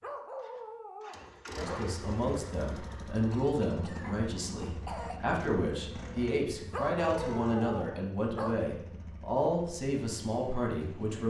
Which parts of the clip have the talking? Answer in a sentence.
You can hear the talking from 1.5 to 11.2 s.